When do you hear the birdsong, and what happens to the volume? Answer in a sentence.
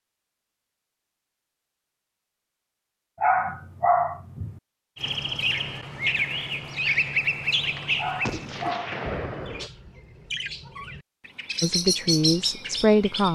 You can hear the birdsong from 5.0 to 13.2 s, getting quieter then louder.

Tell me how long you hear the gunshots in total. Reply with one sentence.
You can hear the gunshots for 2 seconds altogether.